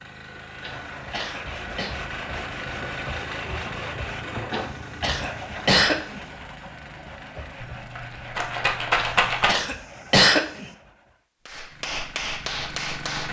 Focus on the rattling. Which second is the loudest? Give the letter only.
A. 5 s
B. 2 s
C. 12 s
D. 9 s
D.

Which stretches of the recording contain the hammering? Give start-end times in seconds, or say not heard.
11.4-13.2.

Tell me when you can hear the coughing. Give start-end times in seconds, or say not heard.
0.6-1.9, 4.5-6.2, 8.9-10.7.